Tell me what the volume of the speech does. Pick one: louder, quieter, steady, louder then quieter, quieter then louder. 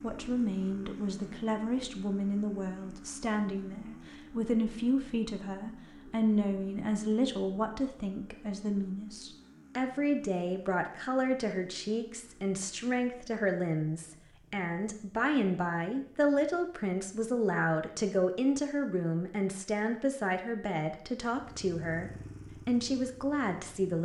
steady.